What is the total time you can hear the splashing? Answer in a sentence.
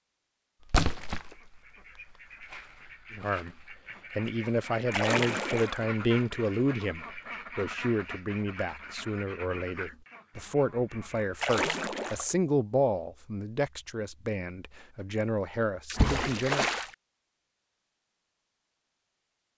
You can hear the splashing for 4 seconds altogether.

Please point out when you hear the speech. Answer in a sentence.
The speech can be heard from 3.1 to 16.7 s.